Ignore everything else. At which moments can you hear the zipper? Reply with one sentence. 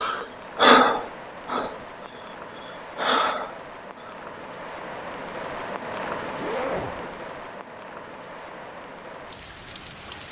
The zipper can be heard from 6.3 to 7.2 s.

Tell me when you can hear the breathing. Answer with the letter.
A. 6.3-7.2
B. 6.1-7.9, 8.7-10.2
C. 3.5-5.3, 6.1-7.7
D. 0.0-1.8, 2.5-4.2
D.